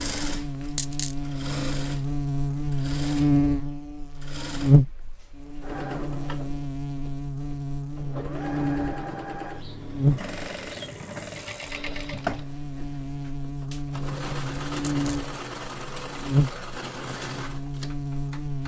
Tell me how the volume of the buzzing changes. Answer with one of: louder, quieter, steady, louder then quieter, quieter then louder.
quieter then louder.